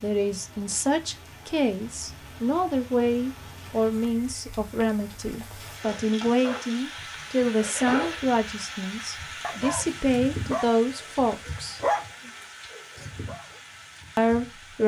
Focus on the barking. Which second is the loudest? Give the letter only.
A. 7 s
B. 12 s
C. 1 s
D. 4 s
B.